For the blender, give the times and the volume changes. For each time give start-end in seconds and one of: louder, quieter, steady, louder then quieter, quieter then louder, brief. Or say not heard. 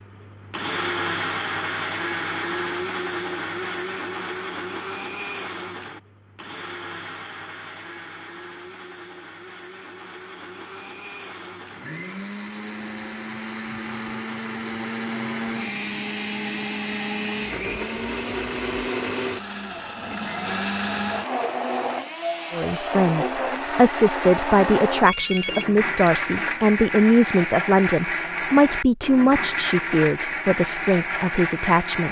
0.0-32.0 quieter then louder.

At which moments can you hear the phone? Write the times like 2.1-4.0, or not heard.
25.1-26.1.